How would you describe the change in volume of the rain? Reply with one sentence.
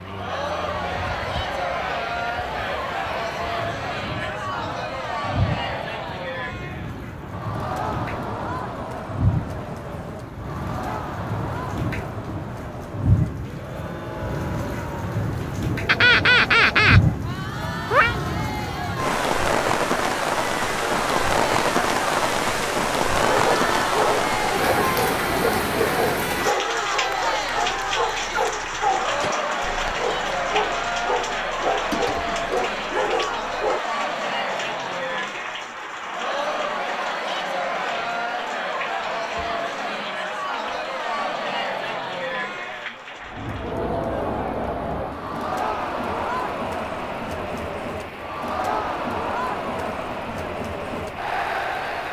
The loudness of the rain goes up, then down.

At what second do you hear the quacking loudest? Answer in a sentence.
The volume of the quacking peaks at 16 seconds.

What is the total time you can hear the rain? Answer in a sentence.
The rain can be heard for 52 seconds in total.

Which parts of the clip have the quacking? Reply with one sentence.
You can hear the quacking from 15.8 to 18.1 s.